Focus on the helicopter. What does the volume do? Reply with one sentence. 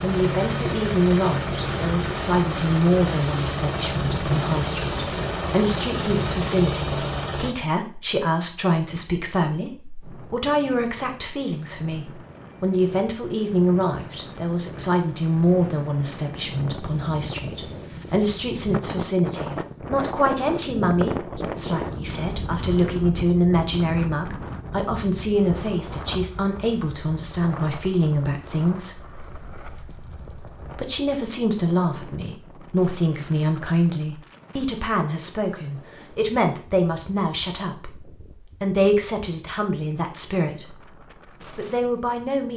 The volume of the helicopter stays about the same.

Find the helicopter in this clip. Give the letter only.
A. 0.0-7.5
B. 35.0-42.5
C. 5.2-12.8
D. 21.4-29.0
A.